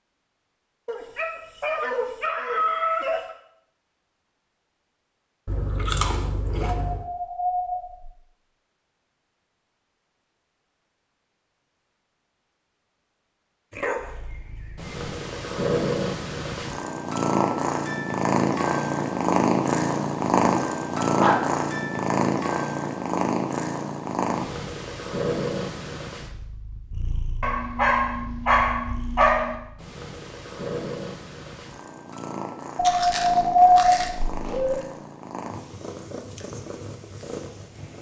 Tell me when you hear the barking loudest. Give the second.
34 s.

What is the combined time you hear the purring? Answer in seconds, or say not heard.
24 s.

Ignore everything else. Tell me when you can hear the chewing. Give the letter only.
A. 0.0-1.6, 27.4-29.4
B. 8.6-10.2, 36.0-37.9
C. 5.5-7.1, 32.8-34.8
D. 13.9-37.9
C.